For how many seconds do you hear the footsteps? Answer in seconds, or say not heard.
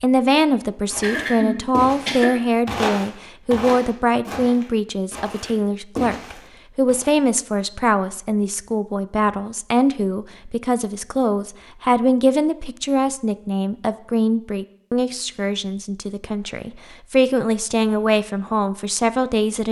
6 s.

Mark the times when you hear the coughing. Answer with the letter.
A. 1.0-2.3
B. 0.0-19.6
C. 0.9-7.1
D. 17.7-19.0
A.